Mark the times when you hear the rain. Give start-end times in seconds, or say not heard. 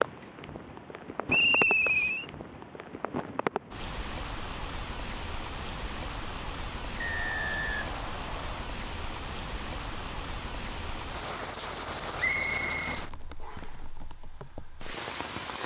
0.0-15.6.